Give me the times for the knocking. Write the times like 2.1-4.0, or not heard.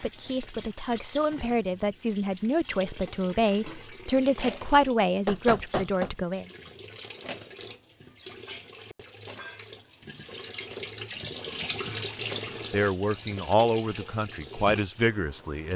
5.2-6.2.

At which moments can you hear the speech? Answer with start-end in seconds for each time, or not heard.
0.0-6.5, 12.7-15.7.